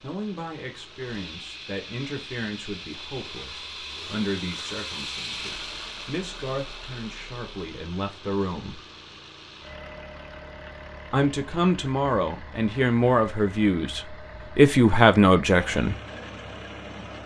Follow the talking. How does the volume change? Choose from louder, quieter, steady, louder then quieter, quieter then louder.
louder.